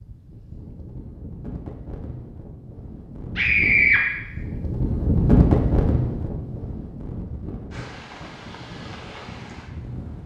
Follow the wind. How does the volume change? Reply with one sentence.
The volume of the wind goes up, then down.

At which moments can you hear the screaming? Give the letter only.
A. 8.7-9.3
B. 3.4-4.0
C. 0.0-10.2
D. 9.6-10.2
B.